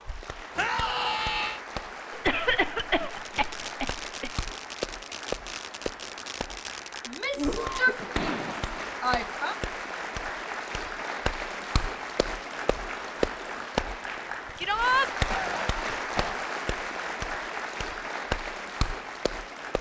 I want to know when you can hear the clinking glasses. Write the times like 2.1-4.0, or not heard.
not heard.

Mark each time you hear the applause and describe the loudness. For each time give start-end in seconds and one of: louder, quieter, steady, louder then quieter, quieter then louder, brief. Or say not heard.
0.0-19.7 louder.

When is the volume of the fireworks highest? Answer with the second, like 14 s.
8 s.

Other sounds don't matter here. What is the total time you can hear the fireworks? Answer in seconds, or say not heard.
6 s.